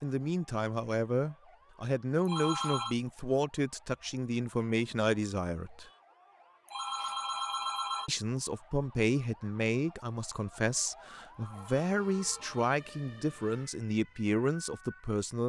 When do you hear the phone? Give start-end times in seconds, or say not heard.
2.2-3.0, 6.7-8.1, 11.3-12.7.